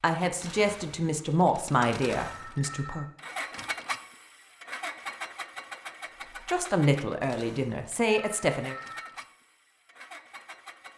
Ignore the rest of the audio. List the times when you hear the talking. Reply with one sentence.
The talking can be heard from 0.0 to 3.0 s and from 6.5 to 8.8 s.